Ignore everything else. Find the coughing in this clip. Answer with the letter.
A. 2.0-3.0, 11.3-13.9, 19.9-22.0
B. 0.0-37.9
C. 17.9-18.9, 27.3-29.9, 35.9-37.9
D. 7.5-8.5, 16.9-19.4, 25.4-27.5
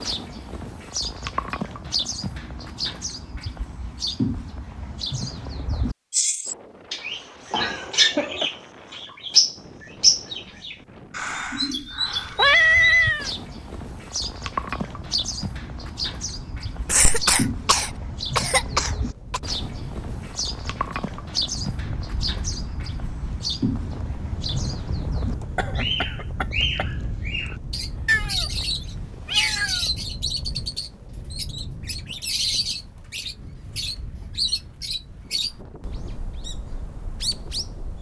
D.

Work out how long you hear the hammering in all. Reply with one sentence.
The hammering can't be heard in this clip.